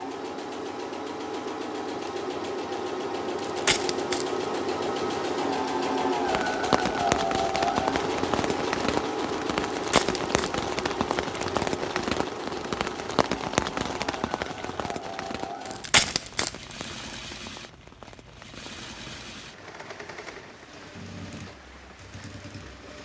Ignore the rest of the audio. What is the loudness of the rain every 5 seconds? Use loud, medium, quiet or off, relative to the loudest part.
off, loud, loud, quiet, quiet.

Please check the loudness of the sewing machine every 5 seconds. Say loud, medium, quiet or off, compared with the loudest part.
loud, loud, medium, quiet, quiet.